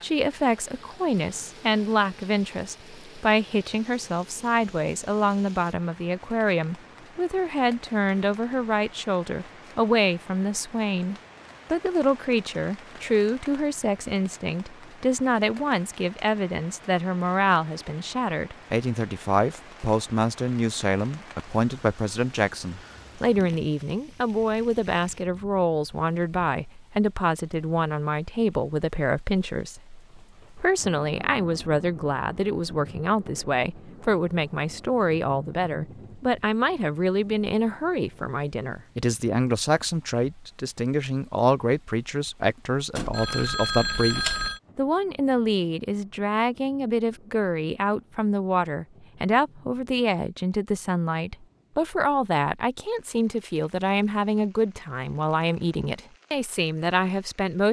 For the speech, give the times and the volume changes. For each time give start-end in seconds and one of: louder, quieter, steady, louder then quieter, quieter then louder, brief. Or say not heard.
0.0-57.6 steady.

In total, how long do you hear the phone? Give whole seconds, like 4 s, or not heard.
2 s.